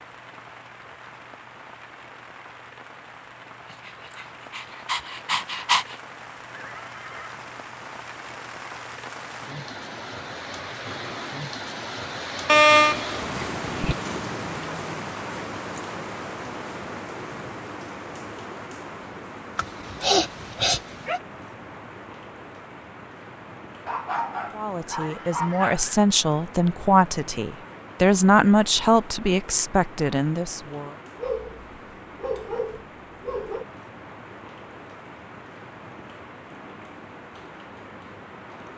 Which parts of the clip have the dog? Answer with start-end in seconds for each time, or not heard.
4.1-6.0, 12.4-13.9, 19.6-21.2, 23.9-25.9, 31.1-33.6.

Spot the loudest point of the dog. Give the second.
13 s.